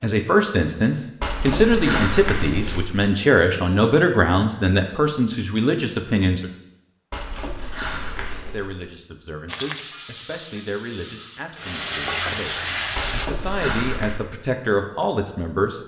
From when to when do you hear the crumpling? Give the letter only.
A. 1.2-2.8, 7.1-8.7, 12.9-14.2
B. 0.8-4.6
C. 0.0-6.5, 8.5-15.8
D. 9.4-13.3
A.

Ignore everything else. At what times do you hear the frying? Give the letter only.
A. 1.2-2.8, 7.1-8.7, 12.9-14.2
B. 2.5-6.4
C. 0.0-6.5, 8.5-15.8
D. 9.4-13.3
D.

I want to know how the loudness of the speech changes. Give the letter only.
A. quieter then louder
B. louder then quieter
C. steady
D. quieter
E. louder
A.